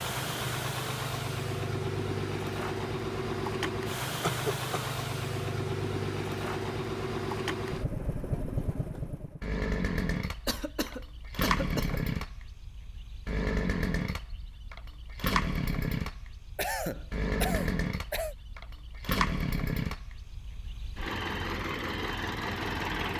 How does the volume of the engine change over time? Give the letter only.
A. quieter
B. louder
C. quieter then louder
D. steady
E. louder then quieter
D.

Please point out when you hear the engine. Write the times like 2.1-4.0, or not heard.
0.0-23.1.